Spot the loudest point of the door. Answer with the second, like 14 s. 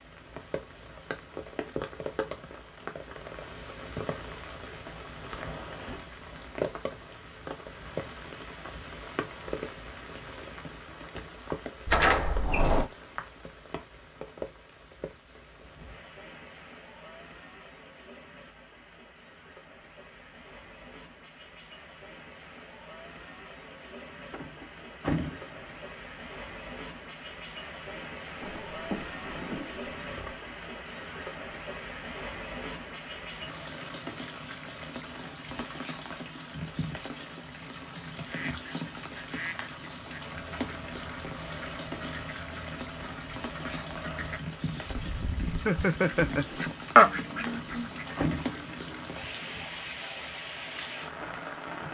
12 s.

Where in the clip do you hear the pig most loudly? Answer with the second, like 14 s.
29 s.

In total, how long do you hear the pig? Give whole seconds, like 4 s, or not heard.
2 s.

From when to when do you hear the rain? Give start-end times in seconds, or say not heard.
0.0-51.8.